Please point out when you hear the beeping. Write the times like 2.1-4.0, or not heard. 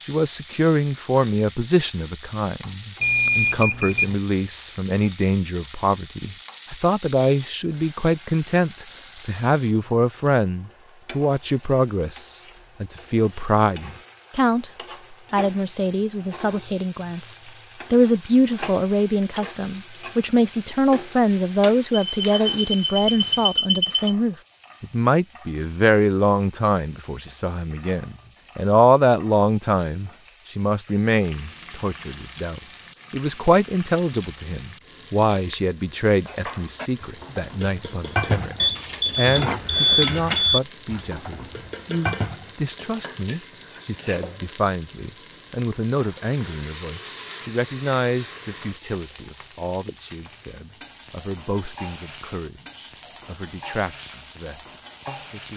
3.0-4.2, 22.1-24.1, 38.6-40.6.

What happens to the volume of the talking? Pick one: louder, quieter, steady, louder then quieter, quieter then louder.
quieter.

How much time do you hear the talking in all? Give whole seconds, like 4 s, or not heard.
55 s.